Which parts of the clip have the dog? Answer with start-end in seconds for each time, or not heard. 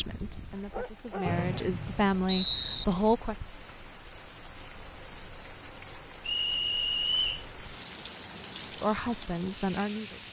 0.3-1.6.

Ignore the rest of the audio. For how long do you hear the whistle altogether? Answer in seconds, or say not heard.
3 s.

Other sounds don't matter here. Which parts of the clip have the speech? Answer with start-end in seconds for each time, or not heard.
0.0-3.4, 8.7-10.2.